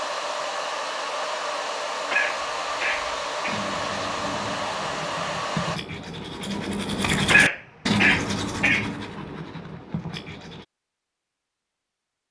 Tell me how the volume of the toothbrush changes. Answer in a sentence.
The loudness of the toothbrush goes up, then down.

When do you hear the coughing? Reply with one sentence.
The coughing can be heard from 2.1 to 3.6 s and from 7.3 to 8.9 s.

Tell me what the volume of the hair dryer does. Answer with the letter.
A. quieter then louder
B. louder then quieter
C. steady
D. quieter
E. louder
C.